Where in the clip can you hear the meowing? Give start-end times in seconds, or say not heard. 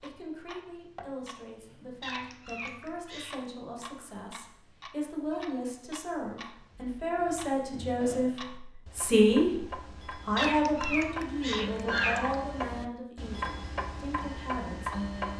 2.0-3.5, 10.3-12.3.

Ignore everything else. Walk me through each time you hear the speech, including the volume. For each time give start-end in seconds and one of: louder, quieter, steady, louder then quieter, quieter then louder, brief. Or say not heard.
0.0-15.3 louder then quieter.